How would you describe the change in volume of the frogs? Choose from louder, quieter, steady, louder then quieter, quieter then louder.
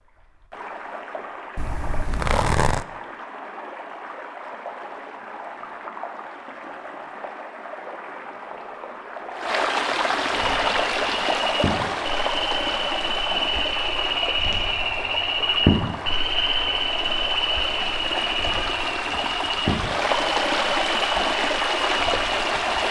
louder then quieter.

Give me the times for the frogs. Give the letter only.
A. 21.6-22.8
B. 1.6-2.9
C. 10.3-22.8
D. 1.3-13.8
C.